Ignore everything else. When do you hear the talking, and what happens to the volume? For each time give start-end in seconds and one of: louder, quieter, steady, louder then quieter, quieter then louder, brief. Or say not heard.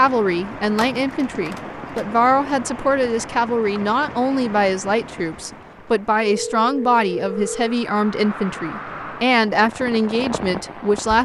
0.0-11.2 steady.